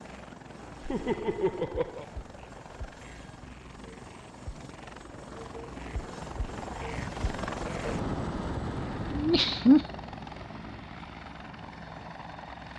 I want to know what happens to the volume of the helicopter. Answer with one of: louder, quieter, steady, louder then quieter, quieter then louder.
louder then quieter.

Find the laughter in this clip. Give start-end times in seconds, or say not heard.
0.8-2.0, 9.2-9.8.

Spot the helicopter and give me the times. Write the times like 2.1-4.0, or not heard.
0.0-12.7.